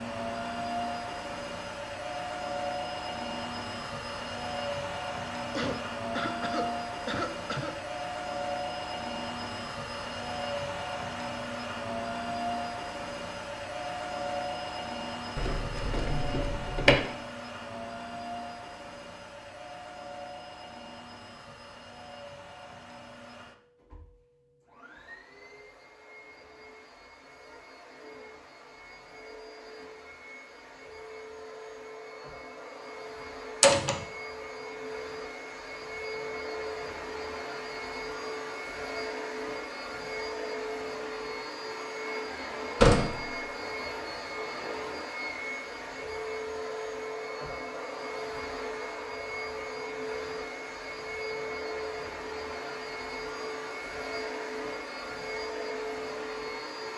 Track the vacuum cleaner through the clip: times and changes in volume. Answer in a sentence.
The vacuum cleaner can be heard from 0.0 to 56.9 s, getting quieter then louder.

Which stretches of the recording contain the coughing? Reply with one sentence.
The coughing can be heard from 5.5 to 7.8 s.